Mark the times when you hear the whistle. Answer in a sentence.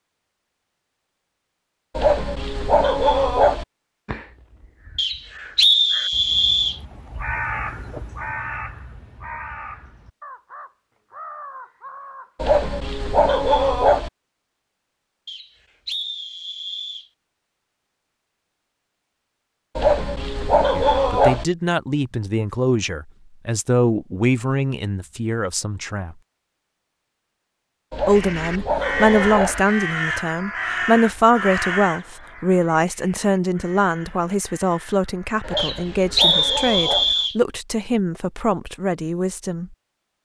You can hear the whistle from 5.0 to 6.8 s, from 15.2 to 17.1 s and from 35.5 to 37.4 s.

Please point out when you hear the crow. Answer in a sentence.
The crow can be heard from 4.0 to 12.4 s and from 28.1 to 36.6 s.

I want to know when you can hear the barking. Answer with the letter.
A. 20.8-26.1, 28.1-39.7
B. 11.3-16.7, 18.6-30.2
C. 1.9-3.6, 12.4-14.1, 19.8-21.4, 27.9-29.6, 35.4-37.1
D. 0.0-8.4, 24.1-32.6
C.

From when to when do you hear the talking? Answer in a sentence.
You can hear the talking from 20.8 to 26.1 s and from 28.1 to 39.7 s.